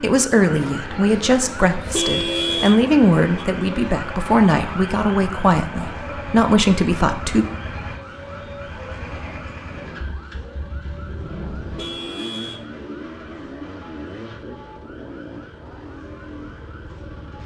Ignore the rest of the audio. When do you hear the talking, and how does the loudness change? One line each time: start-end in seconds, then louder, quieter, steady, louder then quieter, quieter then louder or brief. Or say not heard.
0.0-7.5 steady.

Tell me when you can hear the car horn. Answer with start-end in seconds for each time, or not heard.
1.8-3.5, 11.6-12.7.